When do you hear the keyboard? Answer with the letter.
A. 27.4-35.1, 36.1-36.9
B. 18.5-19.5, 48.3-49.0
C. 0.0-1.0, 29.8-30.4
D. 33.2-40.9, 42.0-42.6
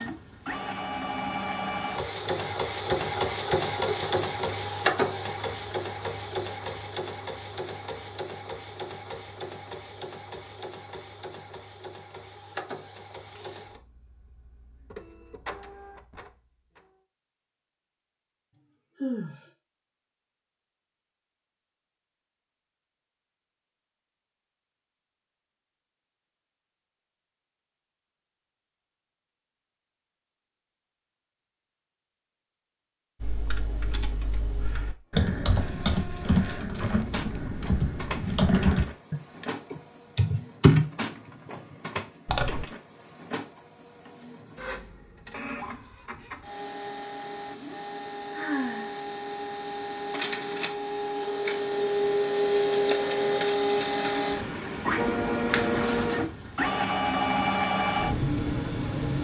D.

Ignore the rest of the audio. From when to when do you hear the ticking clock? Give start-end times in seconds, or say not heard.
not heard.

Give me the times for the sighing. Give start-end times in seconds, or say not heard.
18.5-19.5, 48.3-49.0.